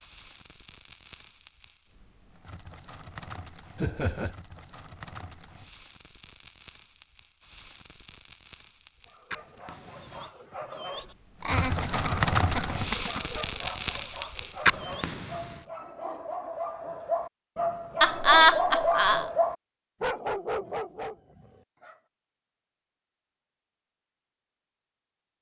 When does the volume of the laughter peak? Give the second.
18 s.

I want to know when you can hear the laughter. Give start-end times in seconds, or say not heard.
3.8-4.3, 11.4-13.2, 18.0-19.2.